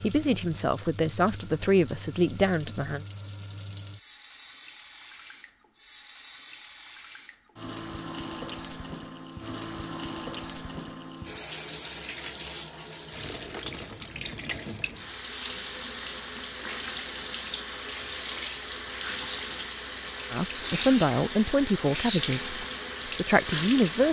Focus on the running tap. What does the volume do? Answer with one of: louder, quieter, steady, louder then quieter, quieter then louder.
louder.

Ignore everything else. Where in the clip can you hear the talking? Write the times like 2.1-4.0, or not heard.
0.0-3.0, 20.3-24.0.